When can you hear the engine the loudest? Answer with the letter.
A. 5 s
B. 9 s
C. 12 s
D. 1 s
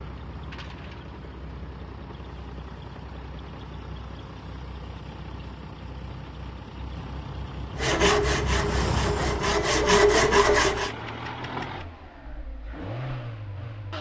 B.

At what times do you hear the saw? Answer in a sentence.
The saw can be heard from 7.8 to 10.9 s.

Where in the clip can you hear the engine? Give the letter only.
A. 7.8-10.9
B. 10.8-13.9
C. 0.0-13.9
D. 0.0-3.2
C.